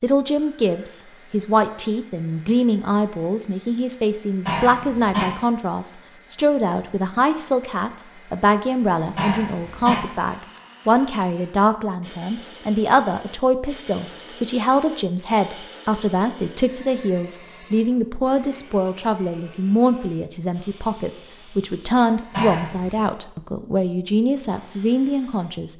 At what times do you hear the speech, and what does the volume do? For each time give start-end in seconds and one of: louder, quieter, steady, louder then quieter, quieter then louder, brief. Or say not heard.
0.0-25.7 steady.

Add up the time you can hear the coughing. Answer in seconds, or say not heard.
2 s.